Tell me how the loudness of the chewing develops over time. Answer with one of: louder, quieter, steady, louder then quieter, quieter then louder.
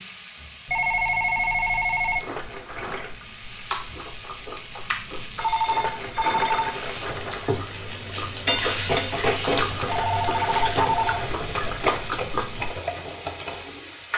louder.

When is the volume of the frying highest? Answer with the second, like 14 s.
9 s.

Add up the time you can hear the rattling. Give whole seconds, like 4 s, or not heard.
5 s.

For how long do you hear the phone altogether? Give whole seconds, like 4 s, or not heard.
5 s.